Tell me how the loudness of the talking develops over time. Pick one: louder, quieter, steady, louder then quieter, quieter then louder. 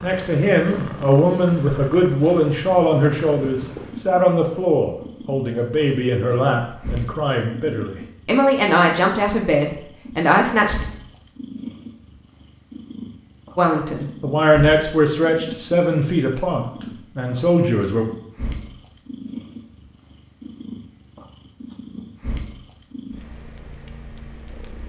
steady.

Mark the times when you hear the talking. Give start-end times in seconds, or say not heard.
0.0-10.8, 13.6-18.1.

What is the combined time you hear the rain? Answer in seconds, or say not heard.
not heard.